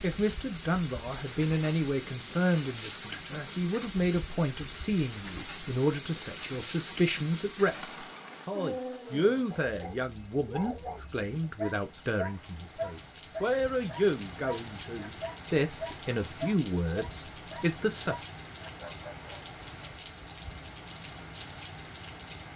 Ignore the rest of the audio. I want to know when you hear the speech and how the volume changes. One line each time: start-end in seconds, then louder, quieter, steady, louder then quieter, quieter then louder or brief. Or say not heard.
0.0-18.1 steady.